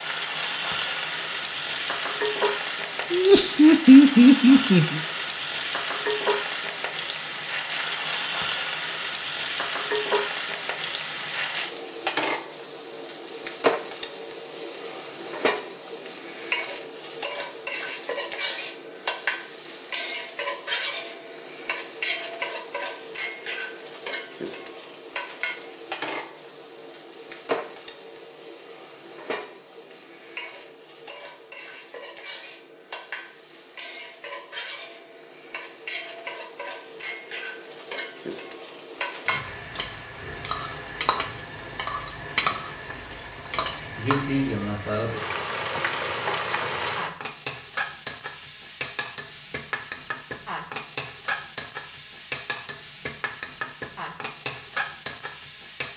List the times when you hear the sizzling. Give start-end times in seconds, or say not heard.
0.0-55.9.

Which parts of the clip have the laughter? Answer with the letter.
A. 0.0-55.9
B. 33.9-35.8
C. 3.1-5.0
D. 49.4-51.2
C.